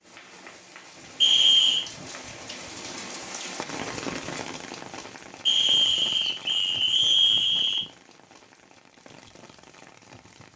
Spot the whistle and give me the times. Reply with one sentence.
The whistle can be heard from 1.2 to 1.9 s and from 5.5 to 7.8 s.